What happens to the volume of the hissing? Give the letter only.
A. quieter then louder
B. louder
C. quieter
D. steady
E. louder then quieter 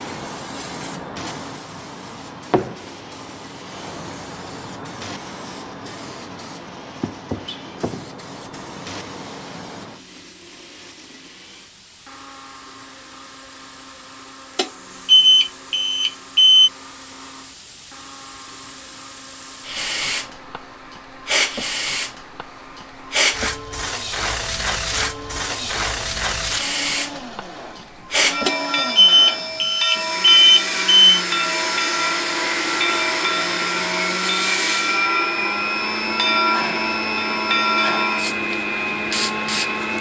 A.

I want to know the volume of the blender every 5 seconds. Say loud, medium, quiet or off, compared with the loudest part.
quiet, quiet, quiet, quiet, quiet, medium, loud, loud.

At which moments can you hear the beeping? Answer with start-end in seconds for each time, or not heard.
14.6-16.7, 28.4-31.2.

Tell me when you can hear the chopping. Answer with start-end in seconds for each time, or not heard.
not heard.